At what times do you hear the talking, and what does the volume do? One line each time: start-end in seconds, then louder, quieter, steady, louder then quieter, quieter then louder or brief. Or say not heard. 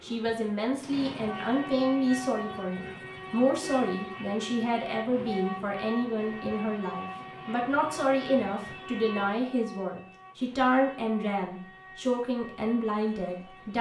0.0-13.7 steady.